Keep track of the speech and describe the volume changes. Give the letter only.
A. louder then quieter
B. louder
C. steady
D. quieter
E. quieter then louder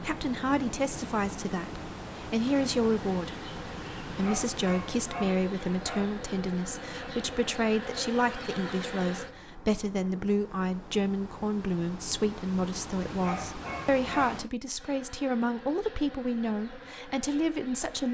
C.